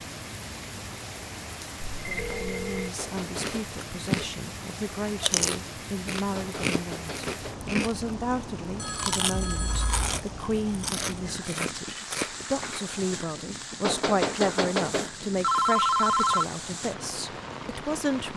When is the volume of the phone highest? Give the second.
16 s.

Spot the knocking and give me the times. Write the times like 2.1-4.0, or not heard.
3.0-3.6, 6.3-7.7, 13.8-15.1.